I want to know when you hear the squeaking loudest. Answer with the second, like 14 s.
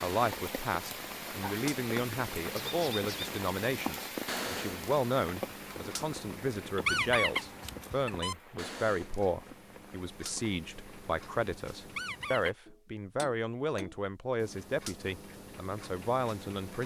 7 s.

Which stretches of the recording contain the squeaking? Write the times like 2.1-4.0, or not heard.
2.6-3.3, 6.8-8.3, 11.9-12.6.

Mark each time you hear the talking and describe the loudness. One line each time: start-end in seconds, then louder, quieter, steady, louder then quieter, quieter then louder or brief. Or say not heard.
0.0-16.8 steady.